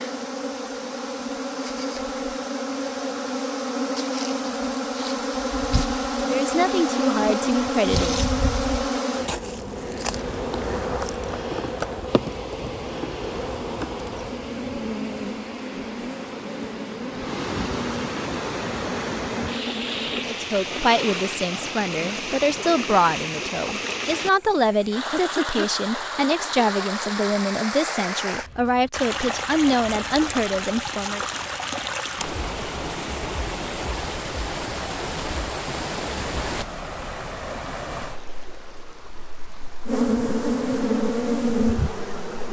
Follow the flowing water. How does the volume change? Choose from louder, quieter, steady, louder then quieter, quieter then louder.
louder.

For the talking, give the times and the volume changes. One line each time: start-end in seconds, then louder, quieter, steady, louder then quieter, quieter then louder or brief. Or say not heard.
6.3-8.3 brief
20.1-31.2 steady.